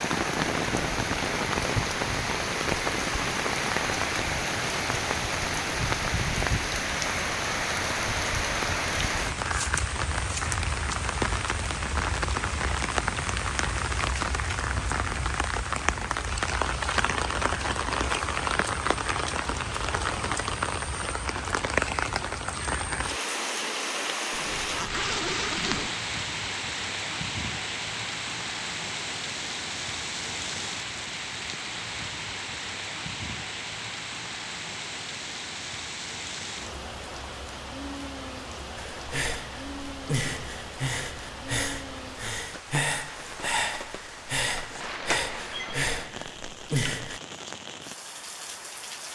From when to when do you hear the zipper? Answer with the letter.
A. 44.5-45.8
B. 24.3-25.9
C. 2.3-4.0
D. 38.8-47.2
B.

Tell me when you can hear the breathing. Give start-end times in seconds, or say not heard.
38.8-47.2.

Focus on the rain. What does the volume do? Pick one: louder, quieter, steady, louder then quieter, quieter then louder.
quieter.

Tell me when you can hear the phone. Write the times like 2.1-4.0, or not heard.
44.5-45.8.